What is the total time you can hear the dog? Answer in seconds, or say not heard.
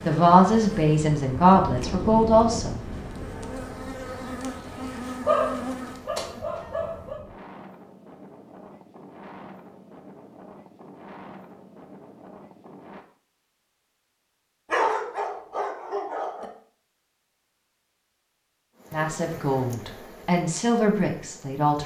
4 s.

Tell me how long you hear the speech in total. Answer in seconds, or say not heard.
6 s.